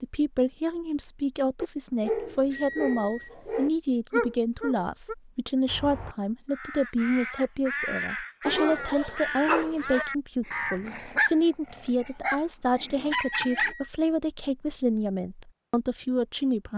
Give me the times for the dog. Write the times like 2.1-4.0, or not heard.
1.6-5.2, 8.4-13.8.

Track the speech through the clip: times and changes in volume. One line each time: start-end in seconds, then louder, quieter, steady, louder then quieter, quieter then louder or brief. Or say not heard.
0.0-16.7 steady.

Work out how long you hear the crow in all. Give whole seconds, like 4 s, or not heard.
5 s.